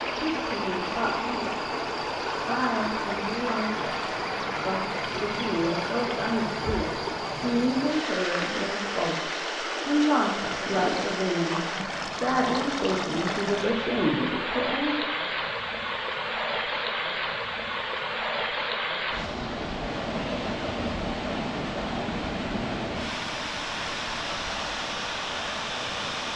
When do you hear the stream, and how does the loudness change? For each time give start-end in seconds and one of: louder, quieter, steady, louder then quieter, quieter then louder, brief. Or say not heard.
0.0-26.3 steady.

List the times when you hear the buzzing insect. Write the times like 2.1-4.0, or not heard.
not heard.